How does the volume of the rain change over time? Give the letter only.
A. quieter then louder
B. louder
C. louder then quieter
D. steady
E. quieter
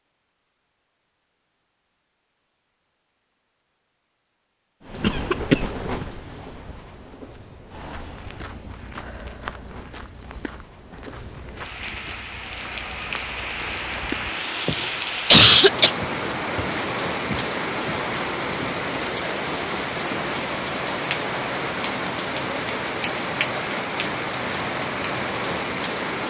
B.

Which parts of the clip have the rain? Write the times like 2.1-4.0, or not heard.
4.8-26.2.